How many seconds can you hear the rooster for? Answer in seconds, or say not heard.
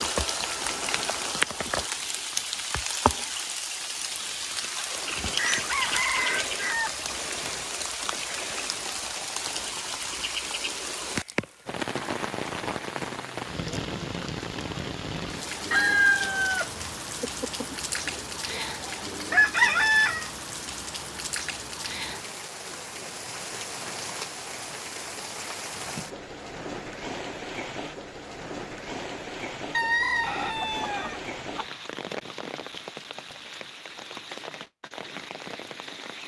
8 s.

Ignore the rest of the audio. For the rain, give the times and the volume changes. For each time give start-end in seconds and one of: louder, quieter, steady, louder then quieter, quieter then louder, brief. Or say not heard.
0.0-36.2 quieter.